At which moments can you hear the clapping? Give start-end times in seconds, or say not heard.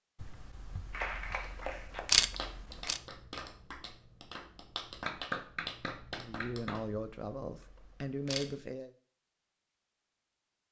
0.9-6.8.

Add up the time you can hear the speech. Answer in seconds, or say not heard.
3 s.